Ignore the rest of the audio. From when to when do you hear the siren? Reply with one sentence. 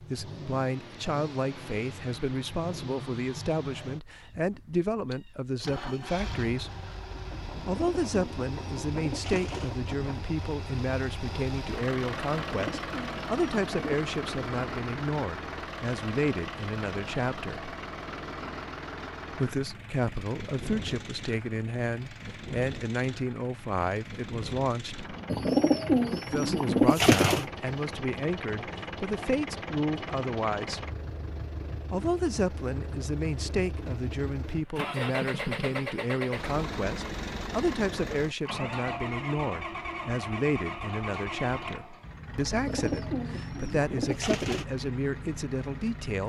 The siren can't be heard in this clip.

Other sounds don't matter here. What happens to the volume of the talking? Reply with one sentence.
The volume of the talking stays about the same.